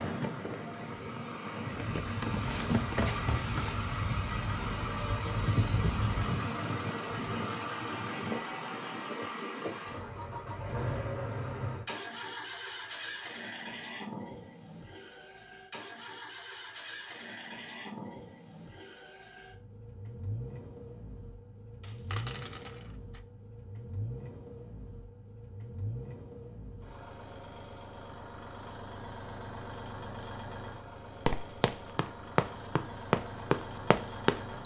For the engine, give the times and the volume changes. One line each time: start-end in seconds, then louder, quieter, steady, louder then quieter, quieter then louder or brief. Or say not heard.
0.0-34.6 quieter.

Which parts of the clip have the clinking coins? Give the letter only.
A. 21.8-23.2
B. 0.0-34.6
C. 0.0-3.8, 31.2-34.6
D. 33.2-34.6
A.